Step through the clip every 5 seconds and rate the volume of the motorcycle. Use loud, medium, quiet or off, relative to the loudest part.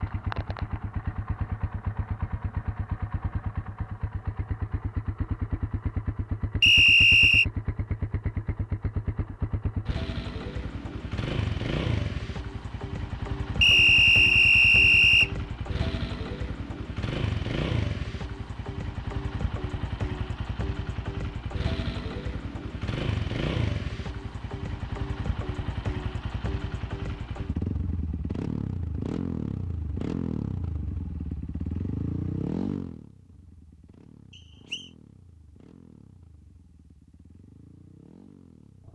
loud, loud, loud, loud, loud, loud, loud, quiet.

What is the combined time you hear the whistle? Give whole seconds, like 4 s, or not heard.
3 s.